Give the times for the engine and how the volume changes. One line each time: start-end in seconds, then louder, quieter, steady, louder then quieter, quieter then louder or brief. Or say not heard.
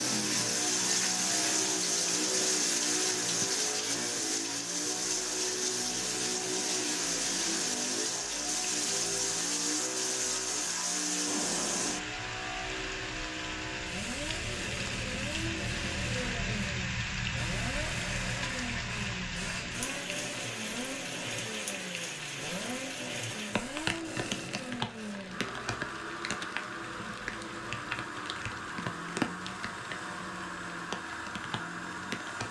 0.0-32.4 steady.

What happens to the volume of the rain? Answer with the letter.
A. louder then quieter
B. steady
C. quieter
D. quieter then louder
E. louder
C.